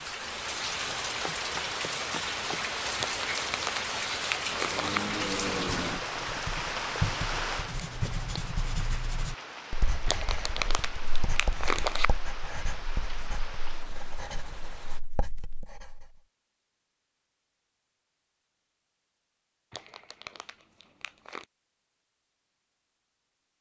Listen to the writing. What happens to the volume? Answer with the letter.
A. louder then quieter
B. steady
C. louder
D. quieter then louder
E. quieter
E.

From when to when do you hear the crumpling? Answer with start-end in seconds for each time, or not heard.
3.0-5.0, 10.1-12.1, 19.7-21.4.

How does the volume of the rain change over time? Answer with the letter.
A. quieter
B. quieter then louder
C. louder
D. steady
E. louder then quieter
A.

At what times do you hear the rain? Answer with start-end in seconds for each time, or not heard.
0.0-15.0.